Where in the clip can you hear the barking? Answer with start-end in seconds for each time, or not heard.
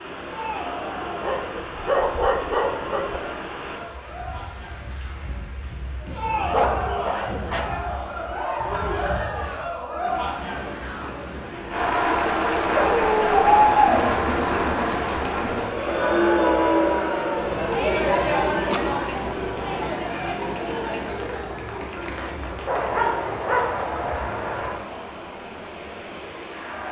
1.2-3.2, 6.5-7.8, 12.7-13.5, 17.9-19.9, 22.6-24.8.